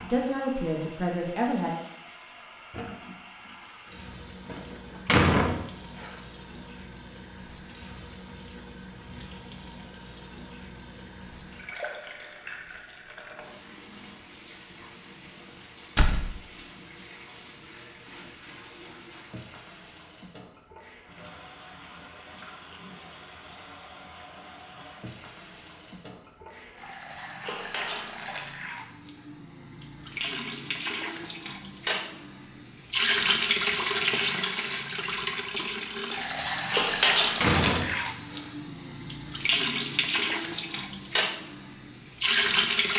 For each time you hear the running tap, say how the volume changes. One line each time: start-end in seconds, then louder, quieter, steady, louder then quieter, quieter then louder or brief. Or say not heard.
0.0-42.9 louder.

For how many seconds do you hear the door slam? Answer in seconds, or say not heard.
4 s.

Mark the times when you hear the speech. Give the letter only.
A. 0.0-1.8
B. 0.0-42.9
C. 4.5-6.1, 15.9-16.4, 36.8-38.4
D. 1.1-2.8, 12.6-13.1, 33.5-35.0
A.